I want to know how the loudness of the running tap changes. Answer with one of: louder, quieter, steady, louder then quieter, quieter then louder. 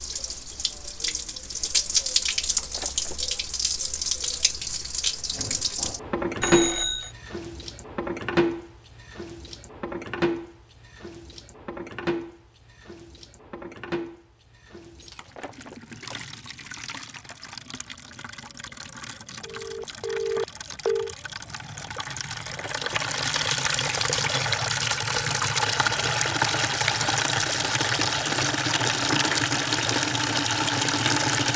quieter then louder.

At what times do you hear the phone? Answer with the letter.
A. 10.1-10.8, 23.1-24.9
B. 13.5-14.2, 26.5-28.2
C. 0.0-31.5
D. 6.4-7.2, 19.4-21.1
D.